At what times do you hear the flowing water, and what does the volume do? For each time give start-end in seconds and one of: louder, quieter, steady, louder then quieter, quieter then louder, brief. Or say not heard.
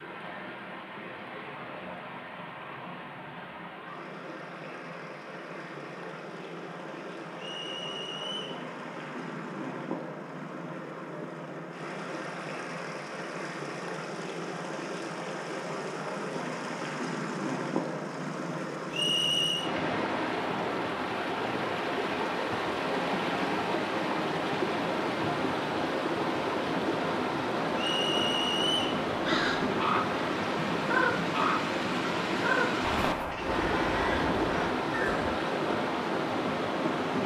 0.0-37.2 louder.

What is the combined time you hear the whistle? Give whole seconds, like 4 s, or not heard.
3 s.